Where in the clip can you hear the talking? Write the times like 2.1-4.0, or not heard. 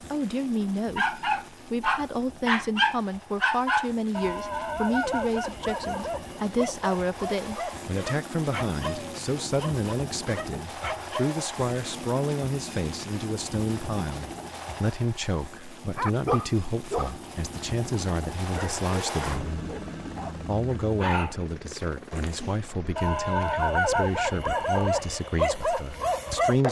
0.1-19.5, 20.4-26.6.